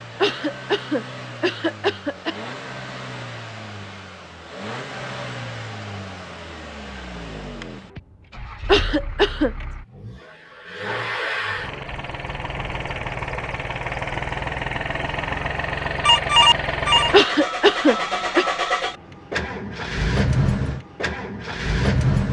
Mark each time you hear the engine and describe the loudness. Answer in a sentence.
The engine can be heard from 0.0 to 22.2 s, getting louder.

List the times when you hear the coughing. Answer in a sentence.
The coughing can be heard from 0.2 to 2.4 s, from 8.7 to 9.5 s and from 17.1 to 18.4 s.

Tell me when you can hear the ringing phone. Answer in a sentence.
The ringing phone can be heard from 16.1 to 17.1 s.